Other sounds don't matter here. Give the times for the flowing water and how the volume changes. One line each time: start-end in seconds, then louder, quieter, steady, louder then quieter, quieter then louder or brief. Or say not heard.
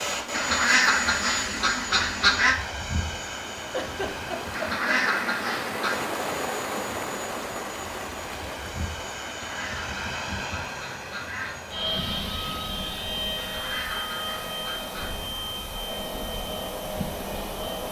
0.0-17.8 louder then quieter.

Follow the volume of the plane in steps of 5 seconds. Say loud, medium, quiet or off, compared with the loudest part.
loud, medium, loud, loud.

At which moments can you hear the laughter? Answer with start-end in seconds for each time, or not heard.
3.7-5.0.